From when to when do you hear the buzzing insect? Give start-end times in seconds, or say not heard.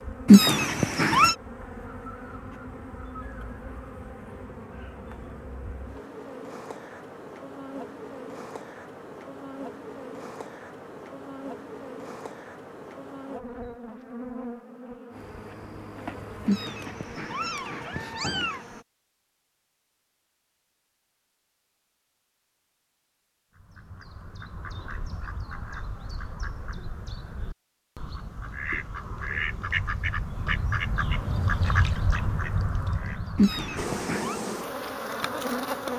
0.0-18.9, 33.8-35.9.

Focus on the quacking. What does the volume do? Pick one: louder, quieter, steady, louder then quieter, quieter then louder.
louder.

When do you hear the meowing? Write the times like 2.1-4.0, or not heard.
0.2-1.4, 16.4-18.6, 33.4-34.4.